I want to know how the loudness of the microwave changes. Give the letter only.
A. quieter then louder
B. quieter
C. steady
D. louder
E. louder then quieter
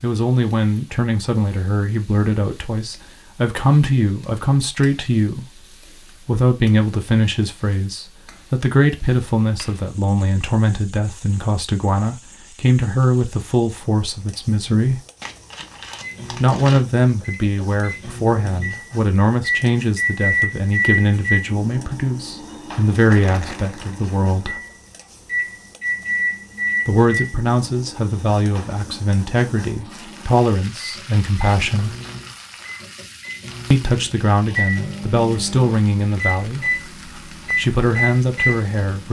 A.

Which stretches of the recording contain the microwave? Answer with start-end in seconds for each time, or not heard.
16.0-39.0.